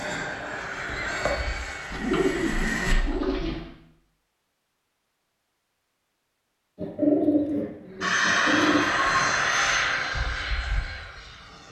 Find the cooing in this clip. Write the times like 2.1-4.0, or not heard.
1.9-3.8, 6.8-9.0.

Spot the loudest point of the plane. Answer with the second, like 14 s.
9 s.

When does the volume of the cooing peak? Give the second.
7 s.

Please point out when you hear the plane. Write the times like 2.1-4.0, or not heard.
0.0-3.0, 8.0-11.6.